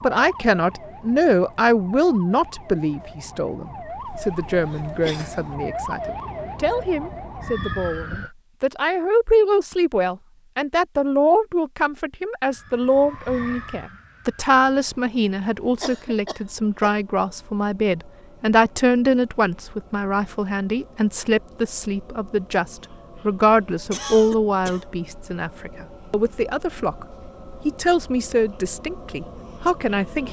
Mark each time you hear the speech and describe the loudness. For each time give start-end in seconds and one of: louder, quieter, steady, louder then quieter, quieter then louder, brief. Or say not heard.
0.0-27.1 steady
27.6-30.2 brief.